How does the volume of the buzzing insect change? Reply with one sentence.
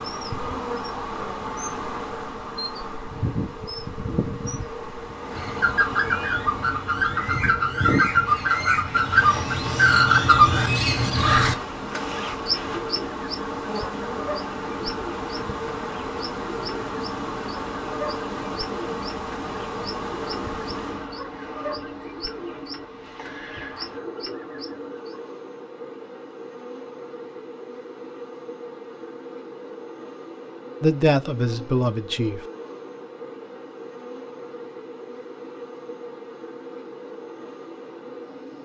The volume of the buzzing insect goes down.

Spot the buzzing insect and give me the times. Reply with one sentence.
You can hear the buzzing insect from 0.0 to 38.6 s.